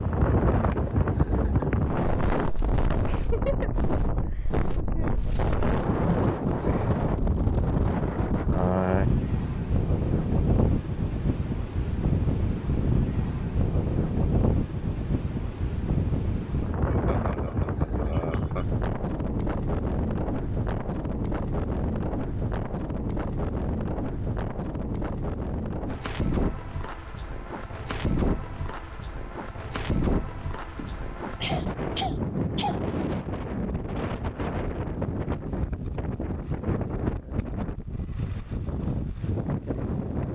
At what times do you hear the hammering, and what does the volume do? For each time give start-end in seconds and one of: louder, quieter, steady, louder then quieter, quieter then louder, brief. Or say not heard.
not heard.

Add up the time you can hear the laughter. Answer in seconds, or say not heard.
6 s.